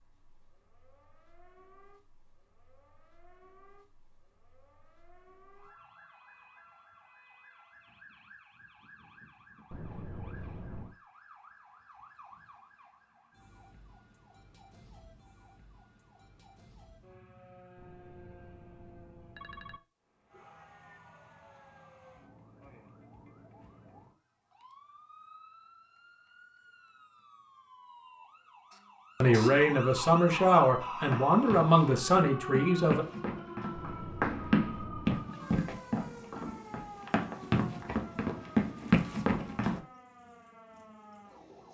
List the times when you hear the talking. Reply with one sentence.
You can hear the talking from 29.2 to 33.0 s.